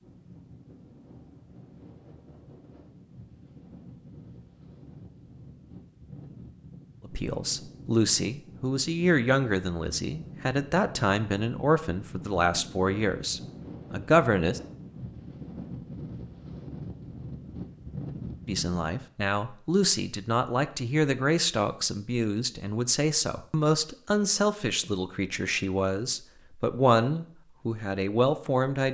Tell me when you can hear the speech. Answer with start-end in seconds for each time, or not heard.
7.0-14.6, 18.4-28.9.